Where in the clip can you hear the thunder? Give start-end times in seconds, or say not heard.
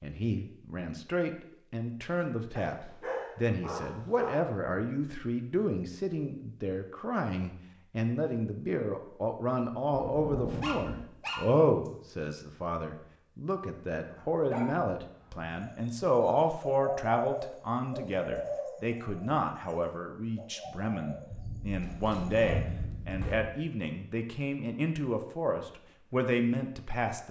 9.9-11.1, 21.3-23.4.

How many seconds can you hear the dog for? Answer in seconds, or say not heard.
6 s.